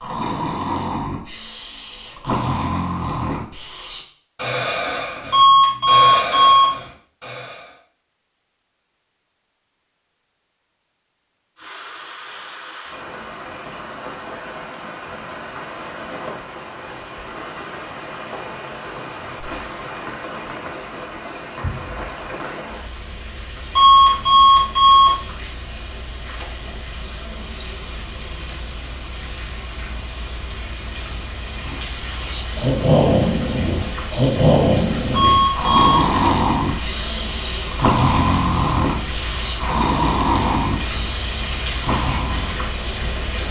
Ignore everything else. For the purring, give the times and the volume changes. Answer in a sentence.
You can't hear the purring here.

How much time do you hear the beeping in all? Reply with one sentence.
The beeping can be heard for 4 seconds in total.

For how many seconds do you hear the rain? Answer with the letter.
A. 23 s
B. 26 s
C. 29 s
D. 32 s
D.